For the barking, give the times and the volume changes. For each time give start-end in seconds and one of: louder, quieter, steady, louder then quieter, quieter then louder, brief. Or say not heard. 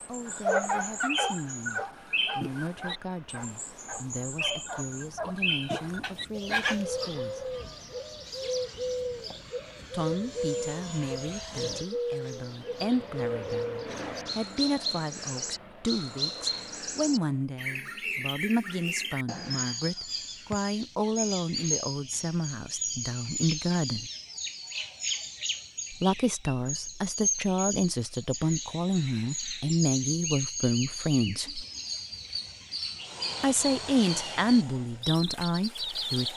0.2-6.8 quieter then louder.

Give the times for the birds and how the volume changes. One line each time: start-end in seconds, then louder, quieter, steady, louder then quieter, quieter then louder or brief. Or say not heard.
0.0-36.3 steady.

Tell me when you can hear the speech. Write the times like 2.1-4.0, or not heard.
0.1-7.5, 9.9-24.1, 25.9-31.6, 33.4-36.3.